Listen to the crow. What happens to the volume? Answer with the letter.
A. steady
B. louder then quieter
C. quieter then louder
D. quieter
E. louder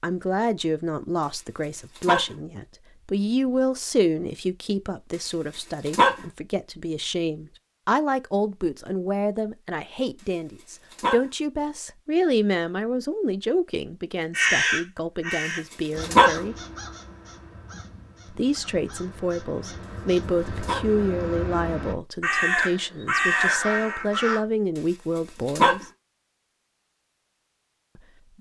C.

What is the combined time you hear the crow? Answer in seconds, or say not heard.
10 s.